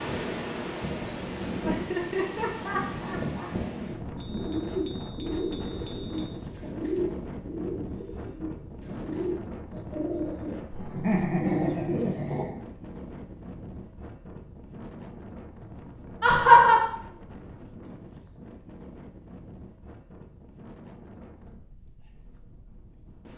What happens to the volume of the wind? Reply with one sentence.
The volume of the wind goes down.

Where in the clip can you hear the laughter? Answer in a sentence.
The laughter can be heard from 1.6 to 3.5 s, from 10.7 to 12.6 s and from 16.2 to 16.8 s.